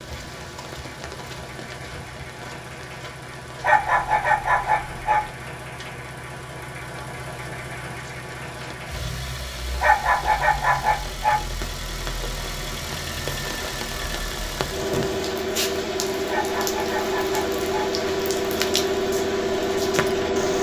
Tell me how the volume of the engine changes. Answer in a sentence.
The volume of the engine goes up.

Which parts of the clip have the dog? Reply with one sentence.
You can hear the dog from 3.6 to 5.3 s, from 9.8 to 11.4 s and from 16.2 to 17.9 s.